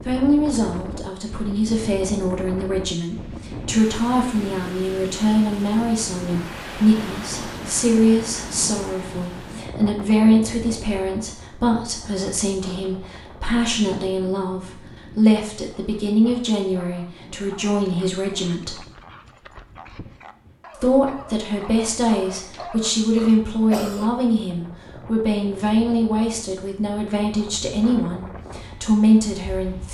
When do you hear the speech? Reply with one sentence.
You can hear the speech from 0.0 to 18.8 s and from 20.8 to 29.8 s.